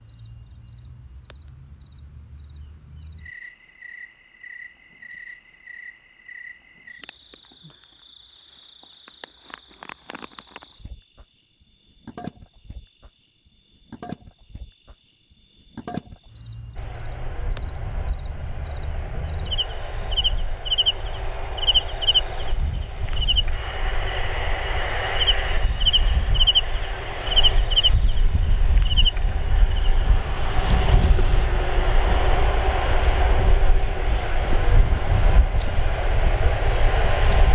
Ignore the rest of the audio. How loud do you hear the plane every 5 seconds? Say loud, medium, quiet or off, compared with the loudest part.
off, off, off, quiet, medium, medium, loud, loud.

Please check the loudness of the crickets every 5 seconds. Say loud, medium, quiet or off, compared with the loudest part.
quiet, quiet, quiet, quiet, loud, loud, medium, medium.